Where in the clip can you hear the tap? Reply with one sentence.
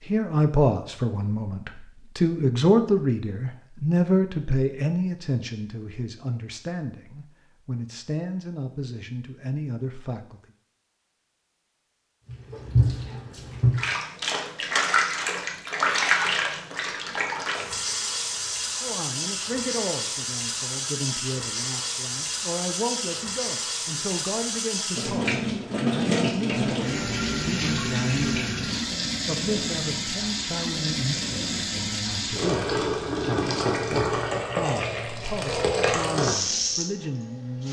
You can hear the tap from 12.2 to 37.6 s.